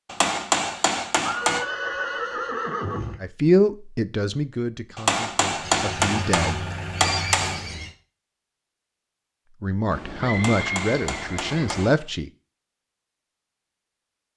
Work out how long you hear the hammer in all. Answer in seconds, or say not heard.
6 s.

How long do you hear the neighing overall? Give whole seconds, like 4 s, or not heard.
6 s.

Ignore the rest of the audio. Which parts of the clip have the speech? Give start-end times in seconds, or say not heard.
3.2-7.1, 9.6-12.3.